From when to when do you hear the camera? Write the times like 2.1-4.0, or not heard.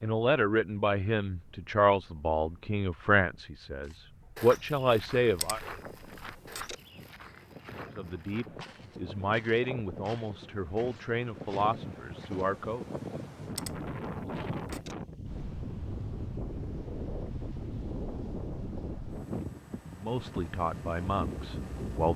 5.3-6.8, 13.5-14.9.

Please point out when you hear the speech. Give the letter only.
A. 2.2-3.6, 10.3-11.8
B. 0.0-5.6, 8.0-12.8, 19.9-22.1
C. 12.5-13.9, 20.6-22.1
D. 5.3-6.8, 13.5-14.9
B.